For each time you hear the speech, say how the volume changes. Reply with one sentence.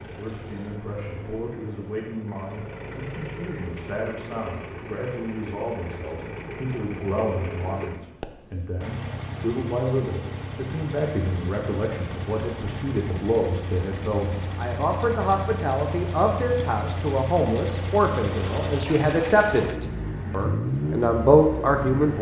The speech can be heard from 0.1 to 22.1 s, getting louder.